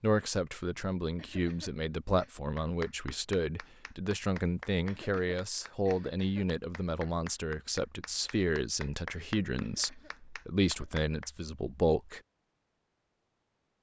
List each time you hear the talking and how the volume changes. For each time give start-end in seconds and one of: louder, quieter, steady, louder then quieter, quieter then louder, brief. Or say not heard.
0.0-12.2 steady.